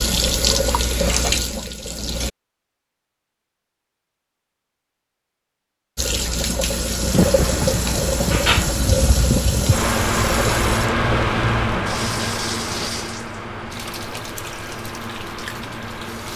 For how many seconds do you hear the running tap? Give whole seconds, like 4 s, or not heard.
13 s.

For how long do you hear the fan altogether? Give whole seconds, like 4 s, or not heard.
9 s.